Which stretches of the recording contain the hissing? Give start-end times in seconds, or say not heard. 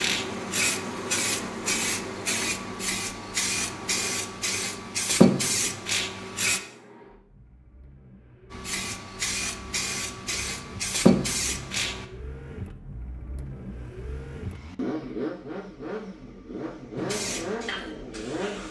0.0-6.6, 8.5-12.1, 16.9-18.6.